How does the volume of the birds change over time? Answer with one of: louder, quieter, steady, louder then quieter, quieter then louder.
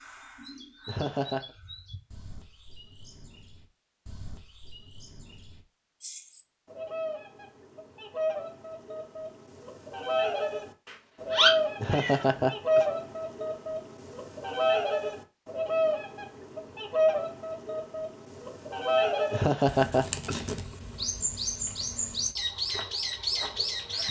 louder.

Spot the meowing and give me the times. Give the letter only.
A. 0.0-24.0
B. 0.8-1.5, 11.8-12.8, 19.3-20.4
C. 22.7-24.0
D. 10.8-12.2
D.